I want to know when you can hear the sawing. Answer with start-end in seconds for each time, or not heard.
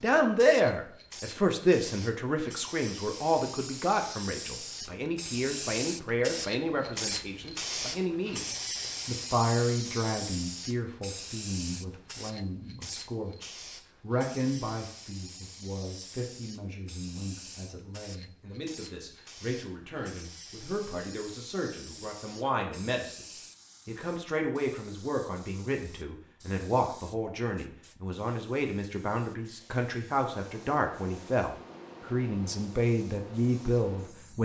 not heard.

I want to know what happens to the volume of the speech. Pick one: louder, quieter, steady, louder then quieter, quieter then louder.
quieter then louder.